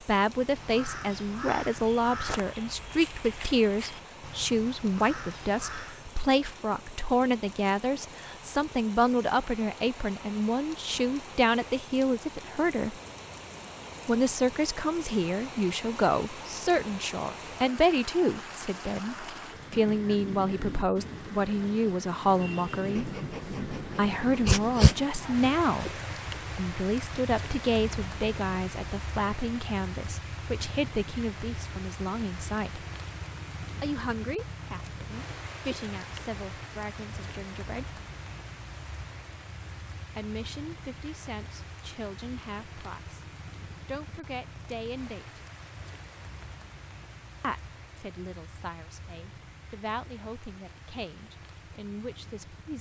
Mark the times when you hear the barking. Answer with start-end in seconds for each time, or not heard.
22.9-24.9.